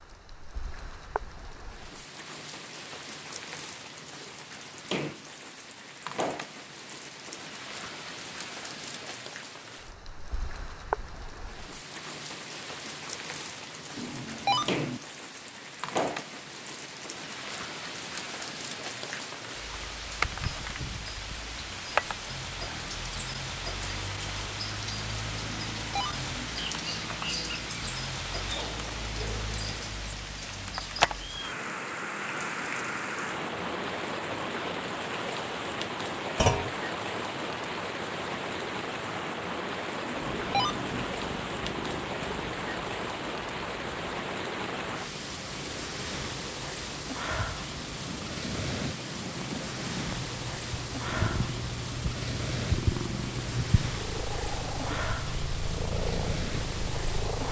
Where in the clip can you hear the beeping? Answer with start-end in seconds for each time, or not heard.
13.9-15.0, 25.4-26.4, 40.0-41.0.